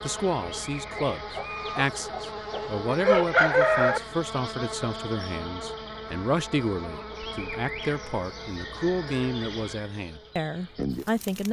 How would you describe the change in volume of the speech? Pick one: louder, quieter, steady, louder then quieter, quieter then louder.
steady.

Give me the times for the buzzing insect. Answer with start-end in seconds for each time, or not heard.
0.0-11.4.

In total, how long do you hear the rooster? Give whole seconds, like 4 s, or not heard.
3 s.